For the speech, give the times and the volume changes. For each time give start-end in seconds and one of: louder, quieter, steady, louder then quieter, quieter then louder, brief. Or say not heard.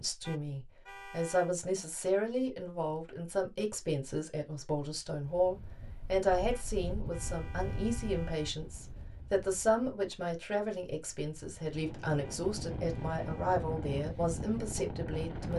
0.0-15.5 steady.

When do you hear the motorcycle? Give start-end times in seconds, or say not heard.
not heard.